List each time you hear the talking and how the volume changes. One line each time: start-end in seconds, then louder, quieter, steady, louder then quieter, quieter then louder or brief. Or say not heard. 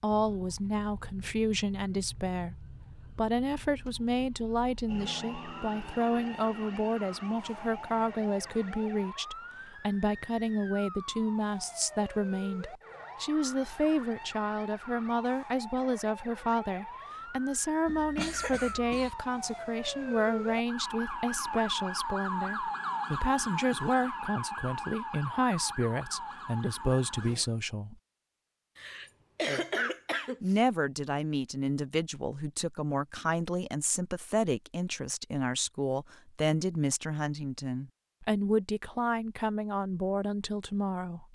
0.0-27.9 steady
30.4-41.3 steady.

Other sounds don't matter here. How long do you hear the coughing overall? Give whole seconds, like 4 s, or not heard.
3 s.